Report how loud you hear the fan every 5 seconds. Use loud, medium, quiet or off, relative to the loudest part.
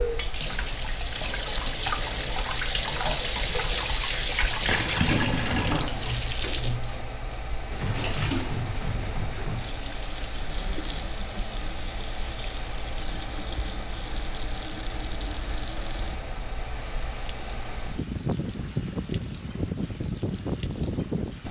medium, medium, medium, loud, loud.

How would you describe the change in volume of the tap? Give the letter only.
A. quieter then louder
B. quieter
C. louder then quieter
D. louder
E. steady
B.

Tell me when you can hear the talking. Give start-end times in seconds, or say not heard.
not heard.